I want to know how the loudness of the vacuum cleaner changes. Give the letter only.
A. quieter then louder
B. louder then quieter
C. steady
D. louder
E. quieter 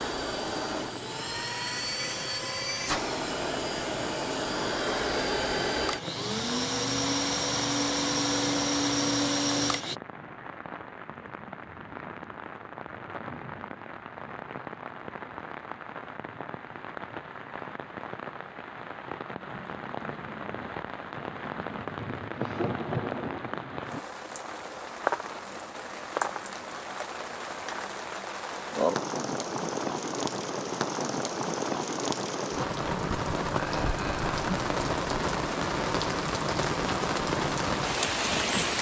D.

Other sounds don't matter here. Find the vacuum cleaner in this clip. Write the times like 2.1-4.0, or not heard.
0.0-9.9.